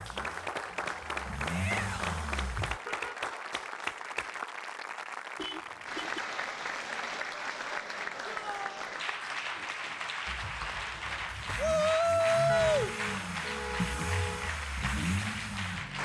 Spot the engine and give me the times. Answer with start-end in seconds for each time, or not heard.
0.0-2.8, 10.2-16.0.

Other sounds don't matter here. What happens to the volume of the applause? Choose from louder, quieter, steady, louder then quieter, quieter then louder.
steady.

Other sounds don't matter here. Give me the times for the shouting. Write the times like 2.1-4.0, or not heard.
1.4-2.1, 8.2-8.9, 11.6-12.9.